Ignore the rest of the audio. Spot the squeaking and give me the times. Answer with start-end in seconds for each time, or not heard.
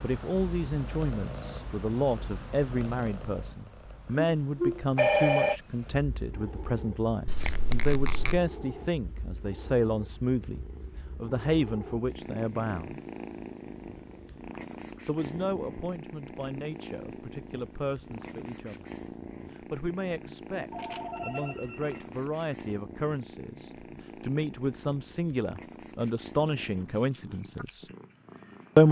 7.2-8.4.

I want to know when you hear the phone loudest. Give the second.
5 s.